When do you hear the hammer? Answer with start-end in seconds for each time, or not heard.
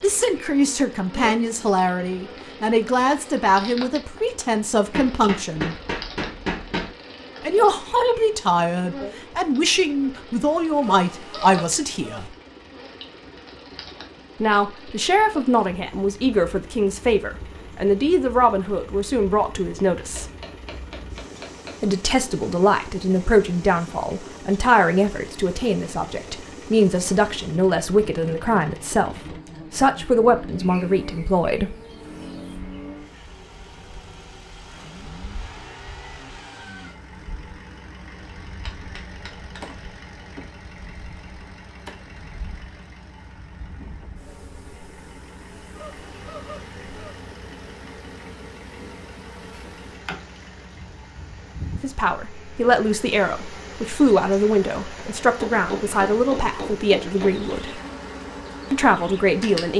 4.9-7.0, 20.1-21.8, 38.5-39.8, 55.4-57.5.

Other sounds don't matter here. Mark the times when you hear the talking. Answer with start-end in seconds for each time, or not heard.
0.0-5.8, 7.4-12.3, 14.4-20.2, 21.8-31.8, 51.8-57.8, 58.7-59.7.